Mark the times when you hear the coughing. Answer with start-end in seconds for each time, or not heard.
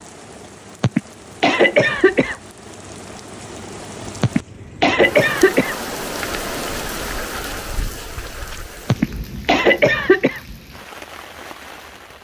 0.8-2.4, 4.2-5.8, 8.8-10.4.